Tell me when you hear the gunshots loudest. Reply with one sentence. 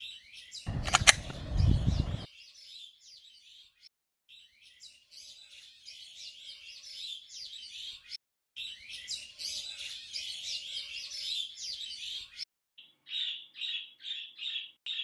The loudest moment of the gunshots is at 1 second.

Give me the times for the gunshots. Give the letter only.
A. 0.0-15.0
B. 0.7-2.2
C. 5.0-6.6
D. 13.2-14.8
B.